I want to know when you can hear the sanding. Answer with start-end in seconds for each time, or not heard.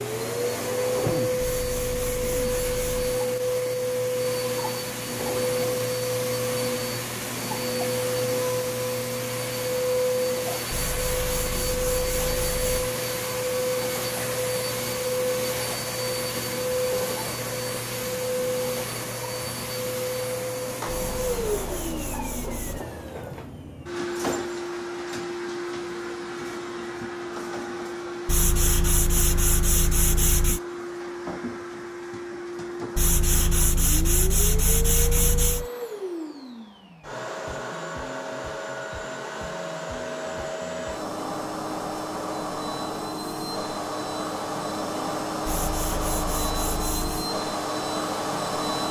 1.4-3.1, 10.7-12.9, 20.9-22.9, 28.2-30.6, 33.0-35.6, 45.5-47.3.